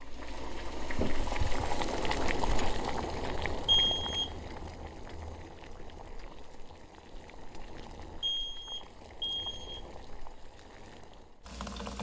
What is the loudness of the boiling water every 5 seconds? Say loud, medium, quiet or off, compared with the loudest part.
loud, quiet, medium.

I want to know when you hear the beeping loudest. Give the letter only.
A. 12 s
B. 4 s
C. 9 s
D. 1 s
B.